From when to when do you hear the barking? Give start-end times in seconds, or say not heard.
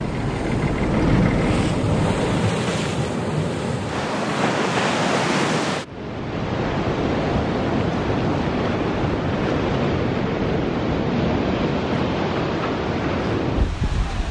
not heard.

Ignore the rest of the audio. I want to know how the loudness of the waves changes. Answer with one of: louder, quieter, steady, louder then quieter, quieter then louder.
steady.